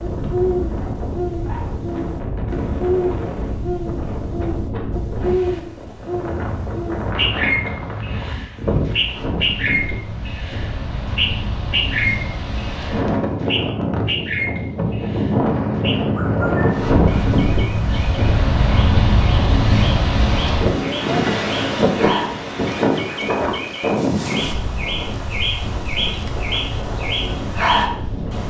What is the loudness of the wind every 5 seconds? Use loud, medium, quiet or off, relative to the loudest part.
medium, medium, medium, loud, loud, medium.